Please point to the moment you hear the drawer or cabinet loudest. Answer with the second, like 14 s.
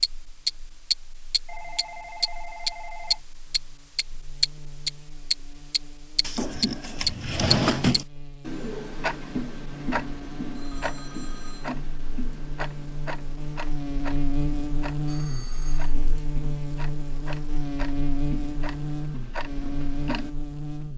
8 s.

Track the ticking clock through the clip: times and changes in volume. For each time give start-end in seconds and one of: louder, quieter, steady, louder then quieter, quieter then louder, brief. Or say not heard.
0.0-20.3 quieter.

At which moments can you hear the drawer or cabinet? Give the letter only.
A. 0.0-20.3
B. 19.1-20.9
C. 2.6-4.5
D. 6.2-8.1
D.